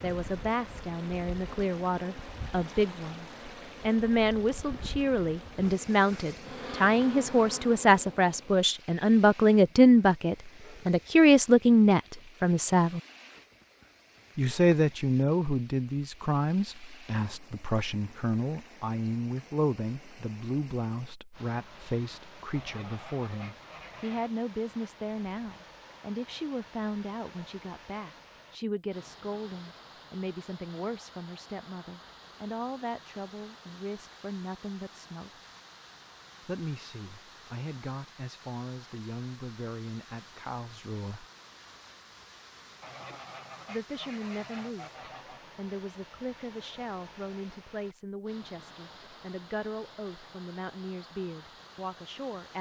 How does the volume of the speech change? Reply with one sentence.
The loudness of the speech goes down.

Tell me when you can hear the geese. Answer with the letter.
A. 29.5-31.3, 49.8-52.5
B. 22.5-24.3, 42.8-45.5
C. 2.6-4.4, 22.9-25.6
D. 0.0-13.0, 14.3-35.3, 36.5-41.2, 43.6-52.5
B.